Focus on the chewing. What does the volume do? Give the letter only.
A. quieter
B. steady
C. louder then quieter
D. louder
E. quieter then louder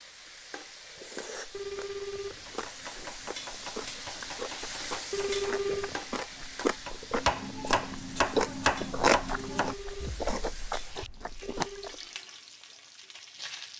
C.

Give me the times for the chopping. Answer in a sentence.
You can hear the chopping from 2.4 to 10.3 s.